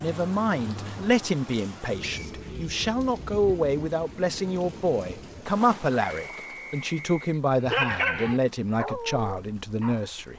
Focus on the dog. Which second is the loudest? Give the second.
8 s.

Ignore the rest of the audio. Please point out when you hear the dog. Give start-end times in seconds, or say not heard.
7.7-10.3.